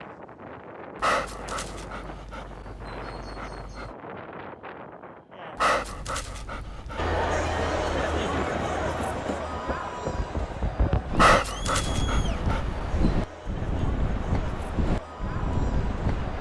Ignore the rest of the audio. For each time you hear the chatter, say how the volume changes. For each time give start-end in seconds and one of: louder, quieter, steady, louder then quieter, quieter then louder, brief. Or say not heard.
7.0-16.3 quieter.